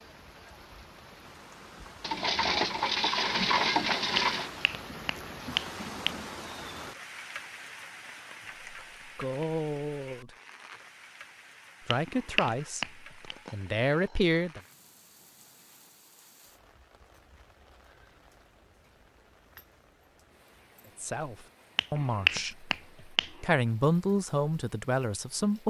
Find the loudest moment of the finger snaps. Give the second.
22 s.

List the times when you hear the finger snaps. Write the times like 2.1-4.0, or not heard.
4.2-6.1, 11.9-13.3, 21.8-23.3.